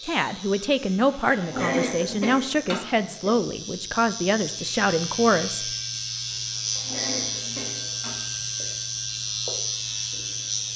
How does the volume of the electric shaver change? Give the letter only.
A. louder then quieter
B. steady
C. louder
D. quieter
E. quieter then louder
C.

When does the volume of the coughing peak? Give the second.
2 s.